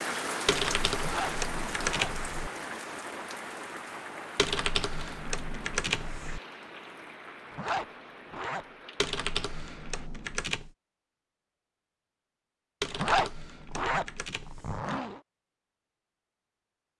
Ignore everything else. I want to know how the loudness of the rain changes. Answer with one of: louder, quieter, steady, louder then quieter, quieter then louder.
quieter.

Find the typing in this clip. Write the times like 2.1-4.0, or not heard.
0.5-2.5, 4.3-6.4, 8.9-10.7, 12.8-14.8.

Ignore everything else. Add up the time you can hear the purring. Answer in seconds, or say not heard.
not heard.